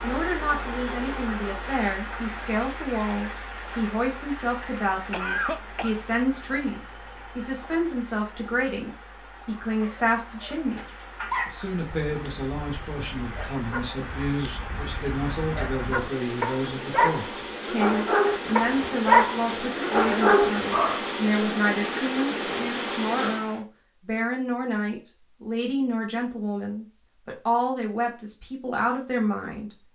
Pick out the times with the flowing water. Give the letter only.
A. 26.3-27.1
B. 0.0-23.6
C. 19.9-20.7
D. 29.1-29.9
B.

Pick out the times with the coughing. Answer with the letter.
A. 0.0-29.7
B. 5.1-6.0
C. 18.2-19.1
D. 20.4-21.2
B.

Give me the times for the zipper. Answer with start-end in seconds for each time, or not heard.
not heard.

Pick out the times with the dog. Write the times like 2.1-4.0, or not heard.
9.5-21.1.